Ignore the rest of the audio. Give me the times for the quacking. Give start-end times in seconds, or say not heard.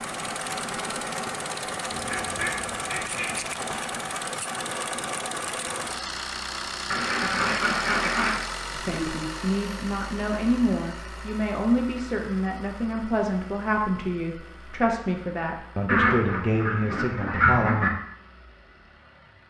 1.9-3.4, 6.9-8.4, 15.8-17.9.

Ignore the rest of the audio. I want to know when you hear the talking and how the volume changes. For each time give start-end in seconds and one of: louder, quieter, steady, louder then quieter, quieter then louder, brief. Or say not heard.
8.8-18.0 steady.